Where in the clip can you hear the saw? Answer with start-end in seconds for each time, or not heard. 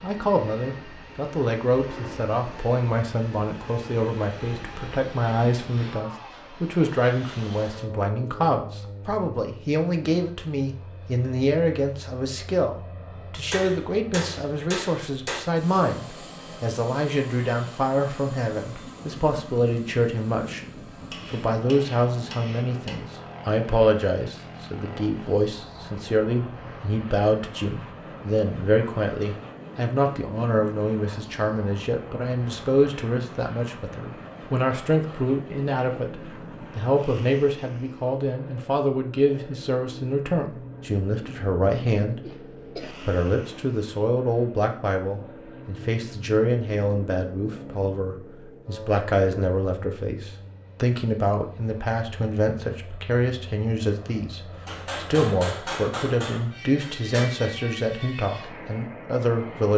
not heard.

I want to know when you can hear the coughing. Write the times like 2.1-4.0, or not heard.
42.2-43.0.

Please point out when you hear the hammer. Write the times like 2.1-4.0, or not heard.
13.5-15.4, 21.1-23.0, 54.6-57.3.